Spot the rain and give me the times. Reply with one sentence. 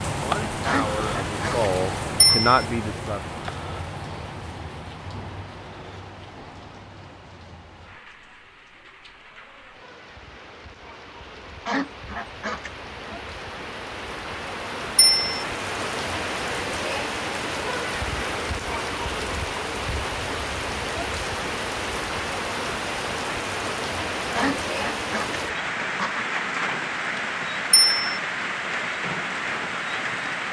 The rain can be heard from 0.0 to 30.4 s.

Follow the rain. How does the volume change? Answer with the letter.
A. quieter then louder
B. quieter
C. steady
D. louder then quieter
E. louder
A.